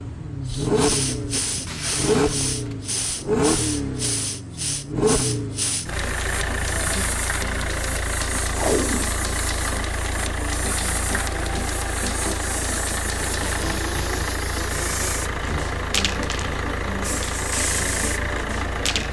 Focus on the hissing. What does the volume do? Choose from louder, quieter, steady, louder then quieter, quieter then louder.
steady.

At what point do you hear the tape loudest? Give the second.
9 s.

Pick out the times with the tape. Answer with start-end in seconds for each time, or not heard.
1.6-2.9, 8.5-9.1, 13.4-14.2.